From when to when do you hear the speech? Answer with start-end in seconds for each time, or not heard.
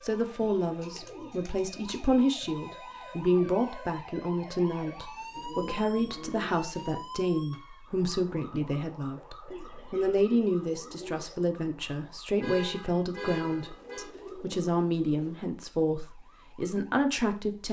0.0-17.6.